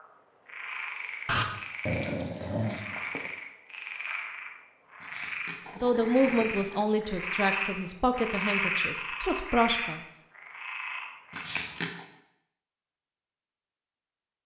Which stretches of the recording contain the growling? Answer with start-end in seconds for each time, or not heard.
1.2-3.3, 5.0-6.8, 11.3-12.0.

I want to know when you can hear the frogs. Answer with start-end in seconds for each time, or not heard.
0.0-11.4.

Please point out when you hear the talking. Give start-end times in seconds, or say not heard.
5.8-10.0.